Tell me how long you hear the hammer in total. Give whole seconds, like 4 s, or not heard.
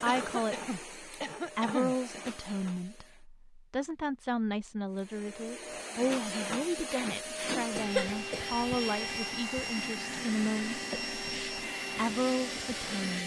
not heard.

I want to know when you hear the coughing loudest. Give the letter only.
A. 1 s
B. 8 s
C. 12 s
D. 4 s
B.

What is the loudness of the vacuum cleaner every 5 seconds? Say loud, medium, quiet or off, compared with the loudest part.
medium, loud, loud.